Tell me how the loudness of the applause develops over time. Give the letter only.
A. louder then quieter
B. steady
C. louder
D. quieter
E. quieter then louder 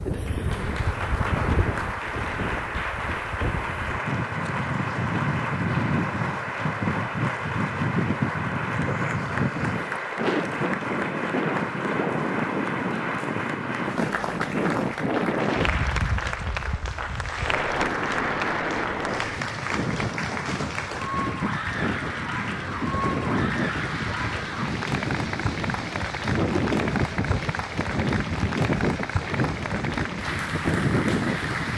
B.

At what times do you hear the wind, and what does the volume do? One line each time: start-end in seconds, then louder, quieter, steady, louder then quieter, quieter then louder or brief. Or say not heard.
0.0-31.7 steady.